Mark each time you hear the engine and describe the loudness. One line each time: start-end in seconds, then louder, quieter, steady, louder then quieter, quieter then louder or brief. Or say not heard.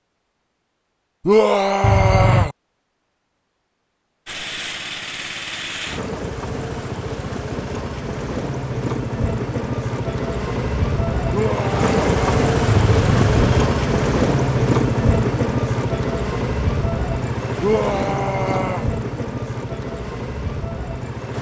4.2-21.3 louder then quieter.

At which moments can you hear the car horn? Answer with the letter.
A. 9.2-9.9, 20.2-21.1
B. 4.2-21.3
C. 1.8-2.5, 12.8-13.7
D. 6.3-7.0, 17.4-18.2
C.